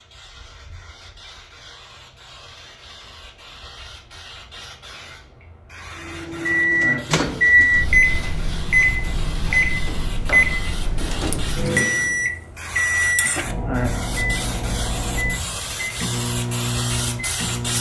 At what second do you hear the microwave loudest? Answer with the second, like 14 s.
8 s.